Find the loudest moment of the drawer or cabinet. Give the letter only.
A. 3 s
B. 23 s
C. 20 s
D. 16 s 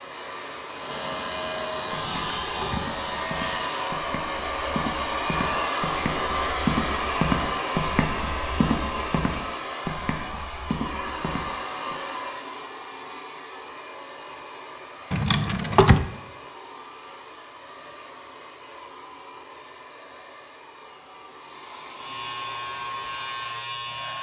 D.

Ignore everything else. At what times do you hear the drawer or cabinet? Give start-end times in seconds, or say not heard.
1.9-2.9, 15.1-16.1.